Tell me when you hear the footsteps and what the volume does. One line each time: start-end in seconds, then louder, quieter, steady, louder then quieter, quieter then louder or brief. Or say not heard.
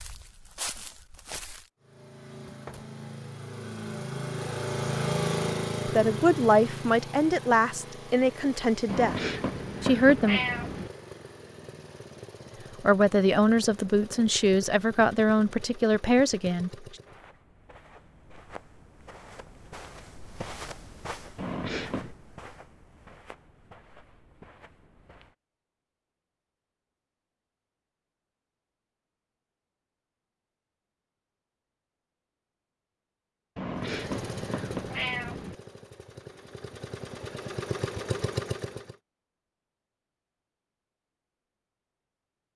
0.0-1.6 brief
17.0-25.4 louder then quieter.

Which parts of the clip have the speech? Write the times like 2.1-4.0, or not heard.
5.8-9.2, 9.8-10.4, 12.8-16.9.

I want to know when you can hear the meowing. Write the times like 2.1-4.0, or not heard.
8.8-10.9, 21.4-22.1, 33.5-35.5.